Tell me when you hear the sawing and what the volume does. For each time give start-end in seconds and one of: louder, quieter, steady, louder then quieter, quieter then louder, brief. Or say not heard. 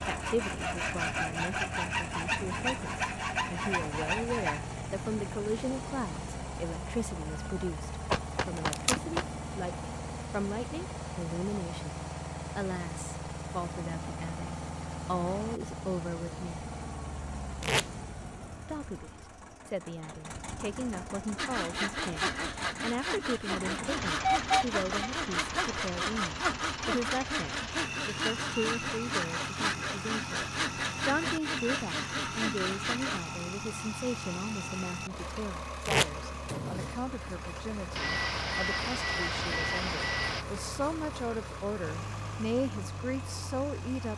0.0-4.7 steady
21.4-33.2 steady.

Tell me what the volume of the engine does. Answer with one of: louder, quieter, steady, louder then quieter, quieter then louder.
steady.